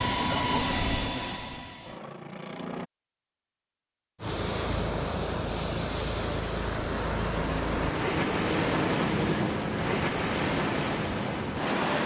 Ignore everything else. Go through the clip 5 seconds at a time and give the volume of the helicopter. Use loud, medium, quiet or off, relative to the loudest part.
loud, loud, medium.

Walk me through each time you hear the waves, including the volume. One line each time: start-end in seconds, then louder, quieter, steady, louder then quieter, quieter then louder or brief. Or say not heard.
4.2-12.0 steady.